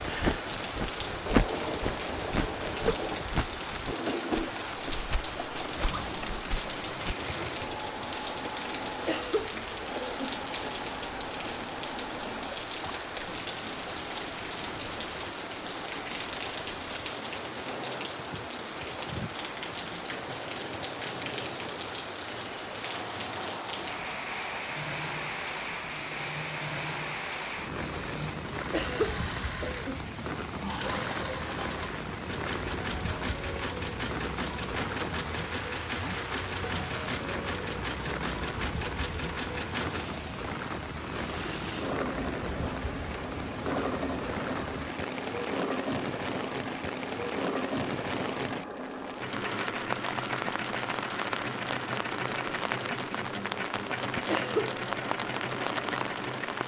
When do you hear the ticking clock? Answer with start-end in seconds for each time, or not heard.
not heard.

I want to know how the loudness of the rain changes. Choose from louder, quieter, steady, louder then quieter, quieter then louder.
steady.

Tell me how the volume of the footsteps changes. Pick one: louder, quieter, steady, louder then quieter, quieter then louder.
quieter.